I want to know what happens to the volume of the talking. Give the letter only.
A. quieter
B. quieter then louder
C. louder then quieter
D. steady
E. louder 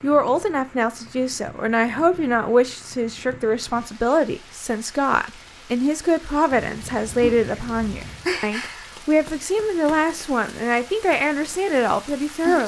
D.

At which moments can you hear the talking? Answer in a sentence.
The talking can be heard from 0.0 to 12.6 s.